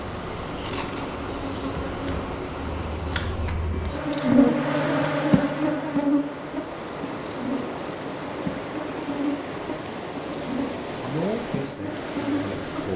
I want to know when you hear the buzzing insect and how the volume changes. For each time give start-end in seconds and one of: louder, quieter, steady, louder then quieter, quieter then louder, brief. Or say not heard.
0.0-12.9 louder then quieter.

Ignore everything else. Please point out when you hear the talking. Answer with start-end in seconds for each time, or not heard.
11.0-12.9.